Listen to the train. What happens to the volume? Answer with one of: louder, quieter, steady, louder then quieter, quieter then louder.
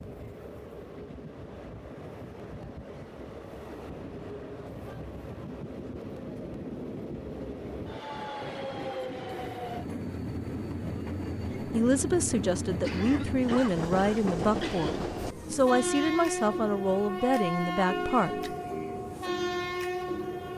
louder.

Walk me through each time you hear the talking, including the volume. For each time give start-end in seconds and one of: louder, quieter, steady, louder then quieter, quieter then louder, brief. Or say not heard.
11.6-18.5 steady.